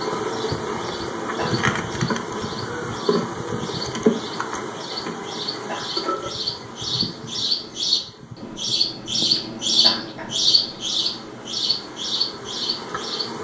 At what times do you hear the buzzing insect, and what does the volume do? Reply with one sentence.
You can hear the buzzing insect from 0.0 to 13.3 s, getting quieter.